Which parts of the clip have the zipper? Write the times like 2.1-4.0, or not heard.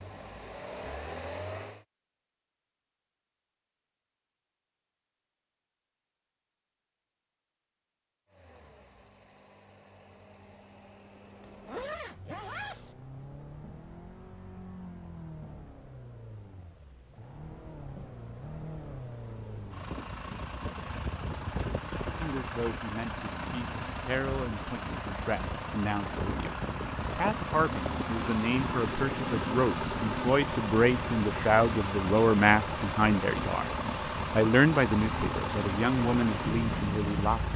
11.4-12.9.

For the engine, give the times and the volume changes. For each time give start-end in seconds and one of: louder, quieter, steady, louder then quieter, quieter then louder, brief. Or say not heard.
0.0-1.9 brief
8.3-37.5 louder.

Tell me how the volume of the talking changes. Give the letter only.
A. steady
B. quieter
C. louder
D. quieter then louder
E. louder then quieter
C.